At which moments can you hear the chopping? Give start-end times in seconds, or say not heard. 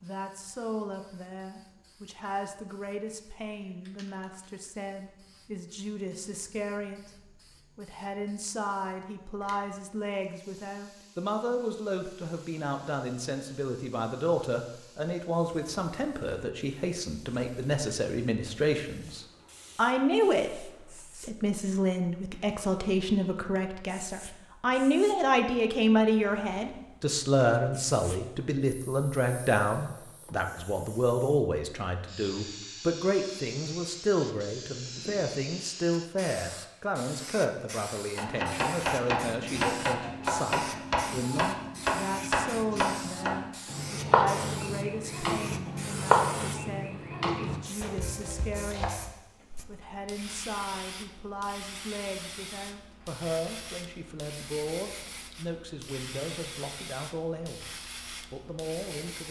38.1-49.1.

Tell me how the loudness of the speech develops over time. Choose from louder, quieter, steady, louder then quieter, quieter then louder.
louder then quieter.